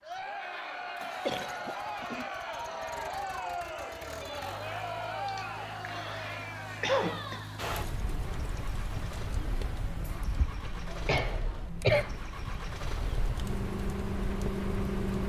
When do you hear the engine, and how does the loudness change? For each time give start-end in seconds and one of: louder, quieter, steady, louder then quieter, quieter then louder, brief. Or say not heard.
0.0-15.2 louder.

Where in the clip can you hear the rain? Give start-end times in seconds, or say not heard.
7.5-15.2.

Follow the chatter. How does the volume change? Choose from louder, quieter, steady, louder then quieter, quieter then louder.
quieter.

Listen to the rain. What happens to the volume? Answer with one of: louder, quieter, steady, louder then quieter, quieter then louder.
quieter then louder.